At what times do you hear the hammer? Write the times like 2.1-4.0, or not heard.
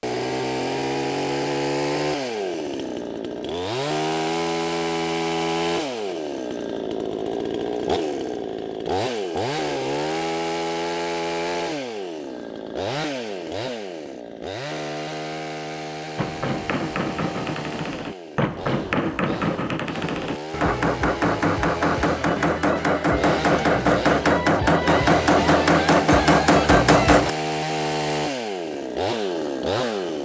16.1-27.3.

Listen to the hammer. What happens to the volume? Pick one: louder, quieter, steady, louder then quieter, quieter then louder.
louder.